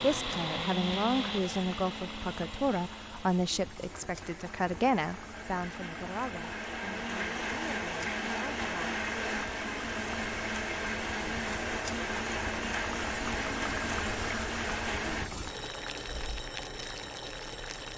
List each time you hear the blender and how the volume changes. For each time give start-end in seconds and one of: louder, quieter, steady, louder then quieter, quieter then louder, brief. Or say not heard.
0.0-15.3 quieter then louder.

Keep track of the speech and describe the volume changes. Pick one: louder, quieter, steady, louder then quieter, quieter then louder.
quieter.